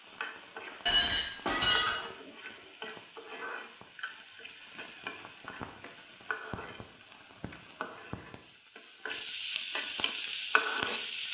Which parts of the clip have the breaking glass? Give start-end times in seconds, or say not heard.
0.8-1.9.